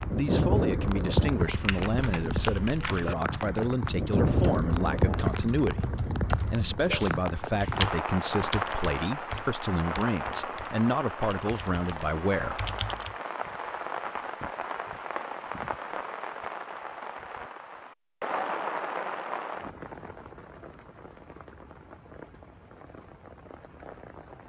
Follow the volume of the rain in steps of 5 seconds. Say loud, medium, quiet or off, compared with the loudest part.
loud, loud, medium, medium, quiet.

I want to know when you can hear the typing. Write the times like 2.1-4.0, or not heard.
1.4-13.2.